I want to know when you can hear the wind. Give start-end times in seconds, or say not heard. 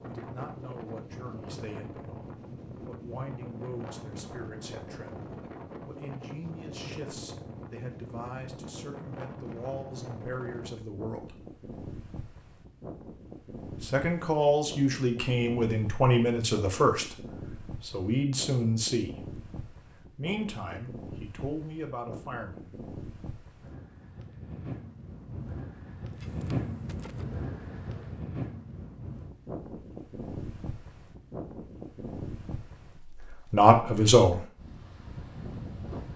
0.0-36.1.